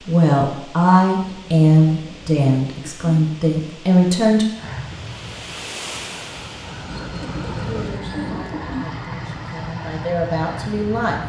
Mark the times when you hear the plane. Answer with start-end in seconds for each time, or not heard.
4.5-11.2.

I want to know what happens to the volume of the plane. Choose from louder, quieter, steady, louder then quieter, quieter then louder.
louder.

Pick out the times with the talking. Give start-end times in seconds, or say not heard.
0.0-4.5, 7.7-11.2.